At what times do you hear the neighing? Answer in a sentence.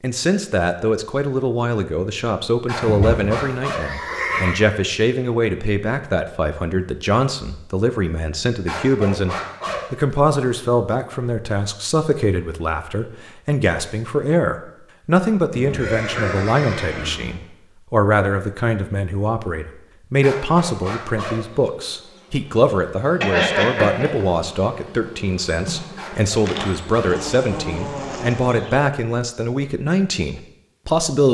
You can hear the neighing from 2.8 to 4.7 s, from 15.5 to 17.4 s and from 23.2 to 24.1 s.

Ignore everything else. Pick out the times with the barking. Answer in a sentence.
You can hear the barking from 2.6 to 3.9 s, from 8.7 to 9.9 s, from 20.2 to 21.4 s and from 25.9 to 27.2 s.